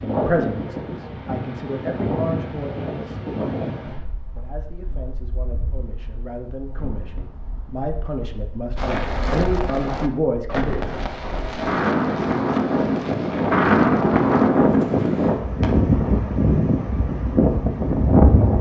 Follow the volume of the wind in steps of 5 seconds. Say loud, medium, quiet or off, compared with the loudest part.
medium, quiet, loud, loud.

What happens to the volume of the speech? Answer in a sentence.
The loudness of the speech goes down, then up.